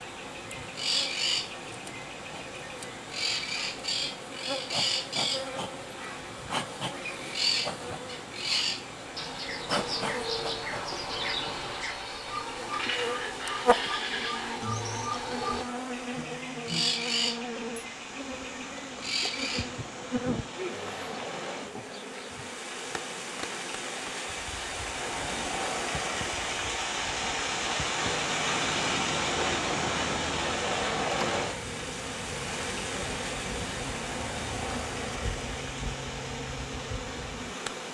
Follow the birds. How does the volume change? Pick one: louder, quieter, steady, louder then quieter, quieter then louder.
steady.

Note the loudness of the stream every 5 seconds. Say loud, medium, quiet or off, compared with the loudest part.
quiet, quiet, quiet, quiet, medium, loud, loud, medium.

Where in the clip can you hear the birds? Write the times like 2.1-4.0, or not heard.
0.0-19.8.